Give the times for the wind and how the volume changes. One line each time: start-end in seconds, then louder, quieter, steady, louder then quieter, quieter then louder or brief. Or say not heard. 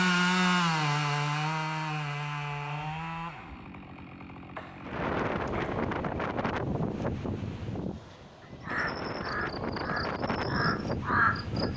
4.8-11.7 quieter then louder.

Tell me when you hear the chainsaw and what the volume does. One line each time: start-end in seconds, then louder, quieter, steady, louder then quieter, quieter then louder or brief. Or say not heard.
0.0-6.5 quieter.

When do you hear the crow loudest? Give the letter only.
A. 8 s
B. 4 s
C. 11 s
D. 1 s
C.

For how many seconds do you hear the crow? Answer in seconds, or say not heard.
3 s.